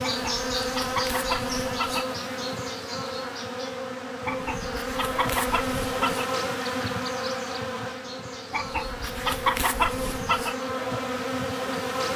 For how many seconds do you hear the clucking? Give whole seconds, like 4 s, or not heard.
6 s.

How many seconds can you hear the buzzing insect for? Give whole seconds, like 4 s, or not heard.
12 s.